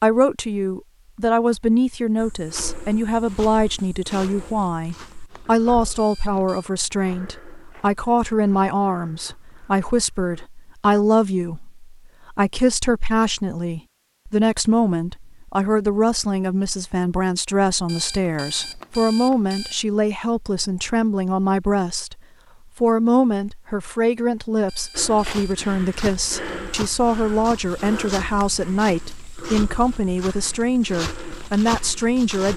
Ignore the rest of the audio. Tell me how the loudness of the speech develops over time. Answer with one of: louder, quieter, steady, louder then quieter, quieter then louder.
steady.